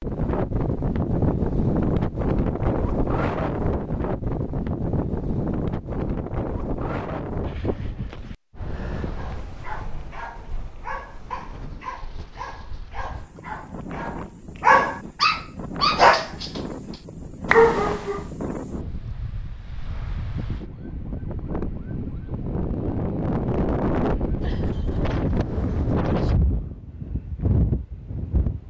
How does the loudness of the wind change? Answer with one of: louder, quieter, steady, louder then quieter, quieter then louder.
quieter then louder.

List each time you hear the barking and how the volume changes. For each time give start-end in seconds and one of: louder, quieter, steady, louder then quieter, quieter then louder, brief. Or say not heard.
9.2-16.6 louder
17.4-18.2 brief.